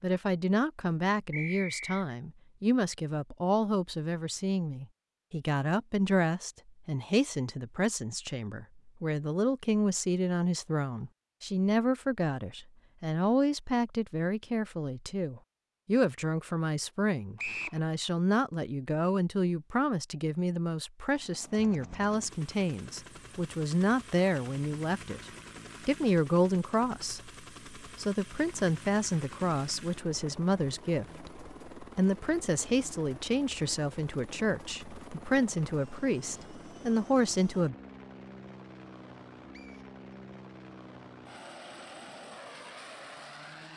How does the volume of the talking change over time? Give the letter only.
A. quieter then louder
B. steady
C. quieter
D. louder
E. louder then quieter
B.